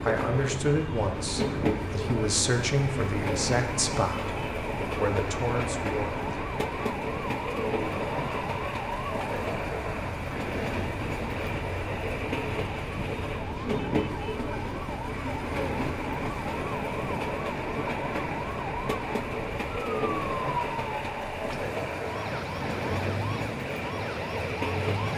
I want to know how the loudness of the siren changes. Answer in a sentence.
The volume of the siren stays about the same.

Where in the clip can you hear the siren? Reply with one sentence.
You can hear the siren from 0.0 to 25.1 s.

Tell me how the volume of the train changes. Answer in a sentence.
The volume of the train stays about the same.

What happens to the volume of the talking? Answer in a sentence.
The volume of the talking stays about the same.